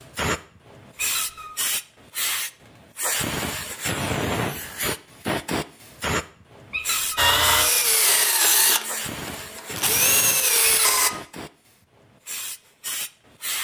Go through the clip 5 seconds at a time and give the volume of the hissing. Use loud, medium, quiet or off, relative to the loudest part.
loud, loud, medium.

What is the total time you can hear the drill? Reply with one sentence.
You can hear the drill for 4 seconds altogether.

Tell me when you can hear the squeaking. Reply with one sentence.
The squeaking can be heard from 0.9 to 1.5 s, from 6.7 to 7.2 s and from 10.6 to 11.2 s.